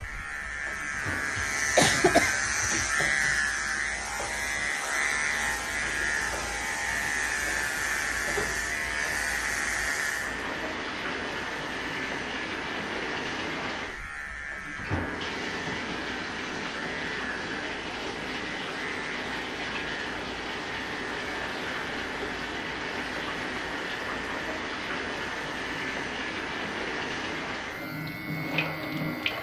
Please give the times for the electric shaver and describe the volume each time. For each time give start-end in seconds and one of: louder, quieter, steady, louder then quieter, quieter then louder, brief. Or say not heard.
0.0-29.3 quieter.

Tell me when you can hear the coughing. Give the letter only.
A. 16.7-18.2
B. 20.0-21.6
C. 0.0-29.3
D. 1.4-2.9
D.